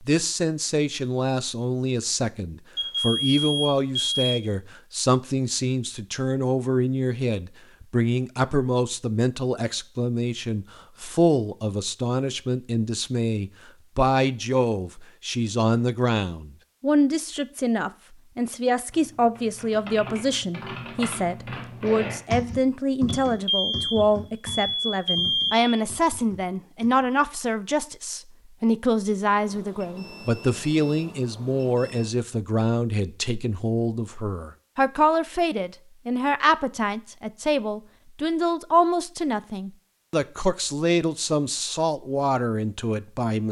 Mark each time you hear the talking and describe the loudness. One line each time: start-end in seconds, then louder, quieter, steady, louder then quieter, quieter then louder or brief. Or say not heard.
0.0-43.4 steady.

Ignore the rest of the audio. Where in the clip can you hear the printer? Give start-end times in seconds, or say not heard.
not heard.